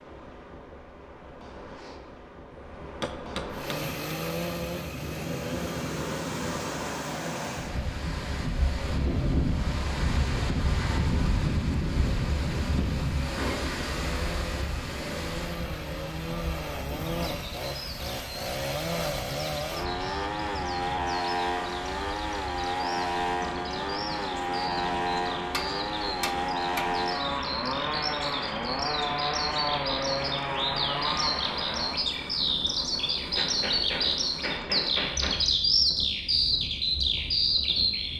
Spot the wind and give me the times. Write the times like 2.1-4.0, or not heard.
0.0-38.1.